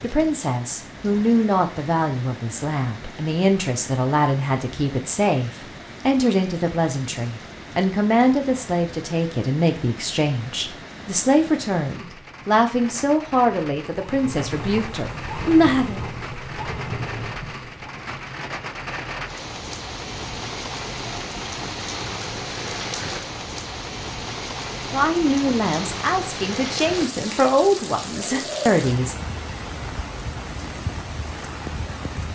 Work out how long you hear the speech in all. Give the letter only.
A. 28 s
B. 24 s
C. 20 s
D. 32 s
C.